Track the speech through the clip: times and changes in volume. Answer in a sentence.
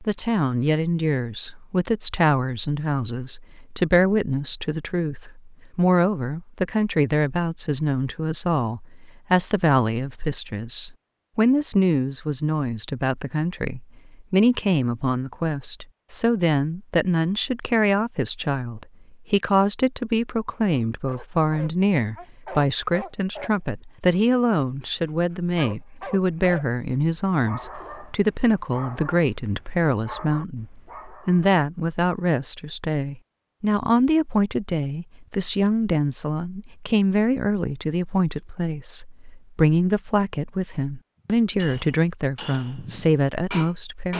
The speech can be heard from 0.0 to 44.1 s, at a steady volume.